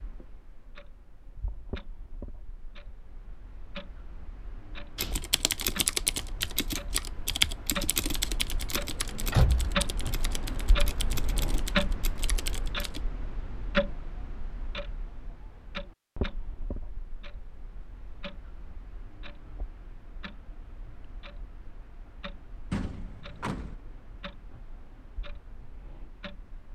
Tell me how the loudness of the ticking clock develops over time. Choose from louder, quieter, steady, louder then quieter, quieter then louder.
louder then quieter.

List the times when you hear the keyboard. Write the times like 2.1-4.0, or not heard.
5.0-13.1.